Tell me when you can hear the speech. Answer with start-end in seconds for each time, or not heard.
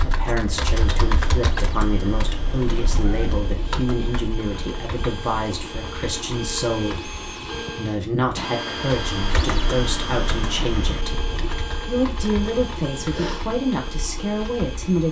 0.0-11.2, 11.8-15.0.